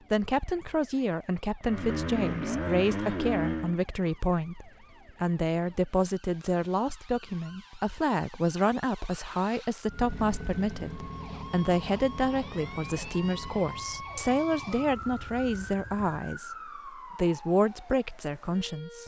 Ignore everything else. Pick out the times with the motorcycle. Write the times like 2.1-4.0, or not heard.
1.6-3.8, 9.8-16.1.